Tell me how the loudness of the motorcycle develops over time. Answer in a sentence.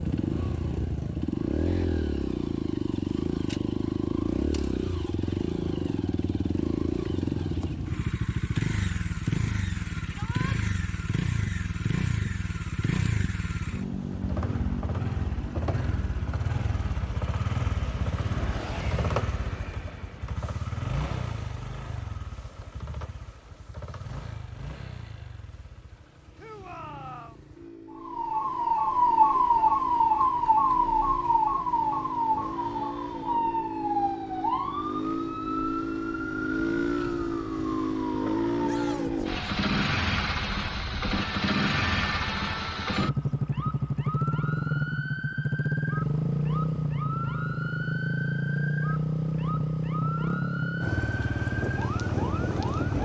The volume of the motorcycle goes down, then up.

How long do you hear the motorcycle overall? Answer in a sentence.
The motorcycle can be heard for 53 seconds in total.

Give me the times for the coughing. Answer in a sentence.
The coughing can't be heard in this clip.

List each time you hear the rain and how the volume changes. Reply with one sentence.
The rain can't be heard in this clip.